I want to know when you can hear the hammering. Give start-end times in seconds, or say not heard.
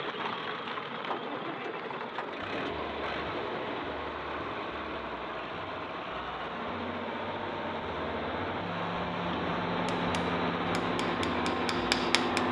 9.8-12.4.